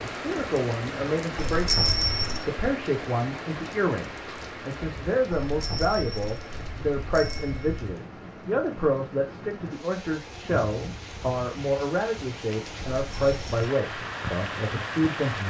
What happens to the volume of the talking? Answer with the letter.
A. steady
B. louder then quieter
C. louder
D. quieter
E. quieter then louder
A.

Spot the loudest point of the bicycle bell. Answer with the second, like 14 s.
2 s.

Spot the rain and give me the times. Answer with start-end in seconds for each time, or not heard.
0.0-15.4.